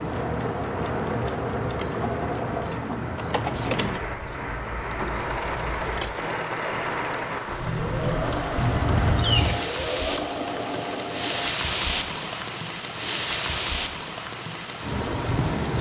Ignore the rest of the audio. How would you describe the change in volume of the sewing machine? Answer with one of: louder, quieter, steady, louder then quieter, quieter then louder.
quieter.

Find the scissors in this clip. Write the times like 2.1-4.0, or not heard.
3.5-6.2, 8.6-9.6.